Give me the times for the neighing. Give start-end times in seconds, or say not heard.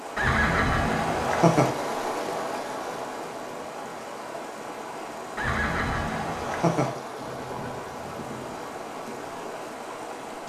0.1-1.7, 5.3-6.9.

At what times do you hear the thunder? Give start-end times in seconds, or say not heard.
7.2-8.8.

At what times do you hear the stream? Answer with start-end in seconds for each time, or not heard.
0.0-10.4.